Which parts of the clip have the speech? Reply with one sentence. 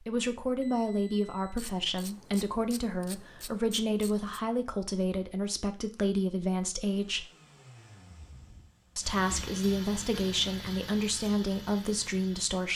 You can hear the speech from 0.0 to 7.2 s and from 8.9 to 12.7 s.